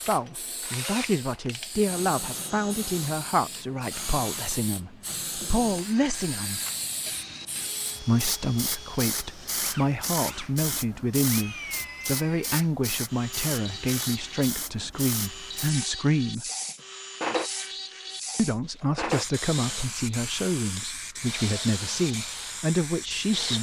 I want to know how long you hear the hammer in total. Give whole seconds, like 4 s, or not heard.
not heard.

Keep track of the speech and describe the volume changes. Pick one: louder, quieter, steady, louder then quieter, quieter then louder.
steady.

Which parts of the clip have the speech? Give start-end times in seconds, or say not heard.
0.0-6.6, 8.0-16.4, 18.4-23.5.